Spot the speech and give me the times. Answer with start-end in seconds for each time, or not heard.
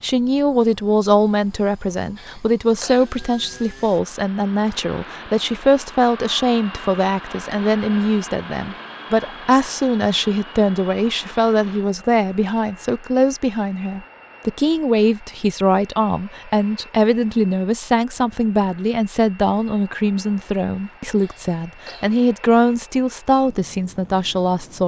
0.0-24.8.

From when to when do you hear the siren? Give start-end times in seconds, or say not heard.
not heard.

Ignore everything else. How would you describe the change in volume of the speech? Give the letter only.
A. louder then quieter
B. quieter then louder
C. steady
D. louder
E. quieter
C.